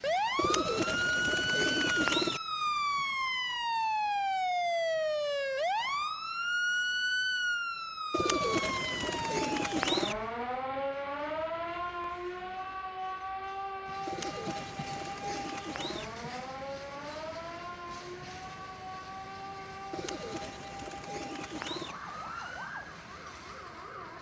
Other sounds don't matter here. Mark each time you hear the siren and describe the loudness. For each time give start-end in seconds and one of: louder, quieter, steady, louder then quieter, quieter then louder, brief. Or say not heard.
0.0-24.1 quieter.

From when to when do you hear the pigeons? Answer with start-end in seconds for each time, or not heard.
0.3-2.4, 8.1-10.2, 14.1-16.1, 19.9-21.9.